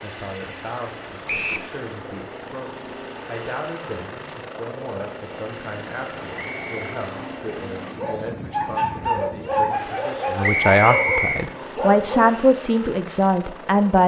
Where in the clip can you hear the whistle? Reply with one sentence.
The whistle can be heard from 1.2 to 1.7 s, from 6.3 to 6.8 s and from 10.4 to 11.4 s.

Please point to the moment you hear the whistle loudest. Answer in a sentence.
The volume of the whistle peaks at 11 seconds.